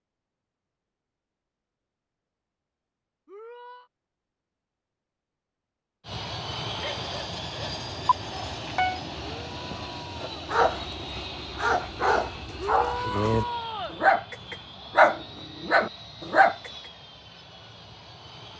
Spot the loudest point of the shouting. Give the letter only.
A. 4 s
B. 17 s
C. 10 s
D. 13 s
D.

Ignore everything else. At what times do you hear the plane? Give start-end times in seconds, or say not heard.
6.0-18.5.